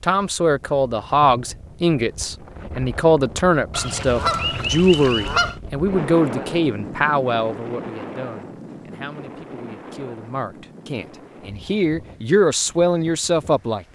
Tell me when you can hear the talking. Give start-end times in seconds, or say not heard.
0.0-13.9.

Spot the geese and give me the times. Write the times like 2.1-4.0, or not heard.
3.7-5.5.